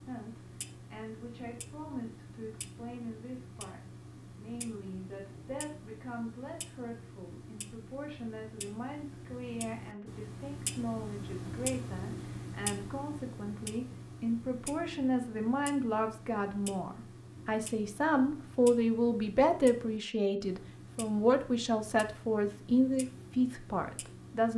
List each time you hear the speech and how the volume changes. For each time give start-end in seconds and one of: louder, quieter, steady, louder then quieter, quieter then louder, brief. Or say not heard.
0.0-24.5 louder.